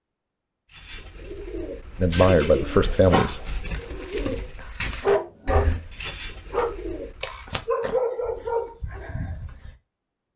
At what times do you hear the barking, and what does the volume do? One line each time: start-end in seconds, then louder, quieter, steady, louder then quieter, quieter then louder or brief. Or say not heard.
2.9-9.7 louder then quieter.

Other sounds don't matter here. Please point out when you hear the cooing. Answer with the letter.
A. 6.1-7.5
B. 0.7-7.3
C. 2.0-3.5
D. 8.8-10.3
B.